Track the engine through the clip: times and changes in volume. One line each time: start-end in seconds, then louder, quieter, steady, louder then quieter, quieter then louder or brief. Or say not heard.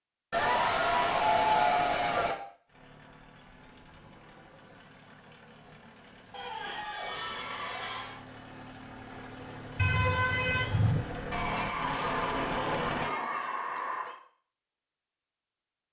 2.6-13.2 louder.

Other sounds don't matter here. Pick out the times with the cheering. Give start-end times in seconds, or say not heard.
0.3-2.4, 6.3-8.2, 11.3-14.2.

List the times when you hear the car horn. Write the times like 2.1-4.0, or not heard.
9.8-11.1.